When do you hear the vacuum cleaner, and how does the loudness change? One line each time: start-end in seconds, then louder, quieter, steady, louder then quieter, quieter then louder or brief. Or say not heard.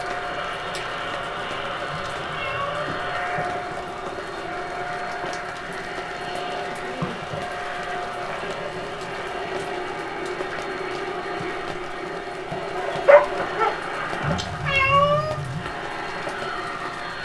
0.0-17.2 steady.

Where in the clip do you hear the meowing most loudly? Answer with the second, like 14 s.
15 s.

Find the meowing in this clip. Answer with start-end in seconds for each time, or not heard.
1.9-3.0, 14.2-15.7.